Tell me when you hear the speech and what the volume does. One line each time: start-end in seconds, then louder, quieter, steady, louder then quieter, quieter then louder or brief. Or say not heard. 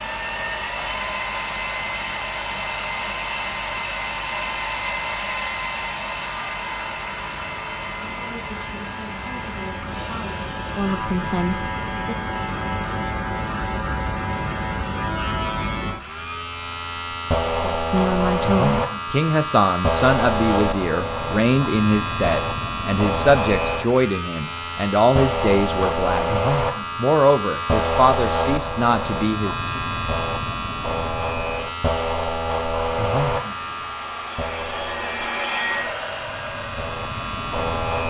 8.1-12.2 louder
17.4-29.8 steady.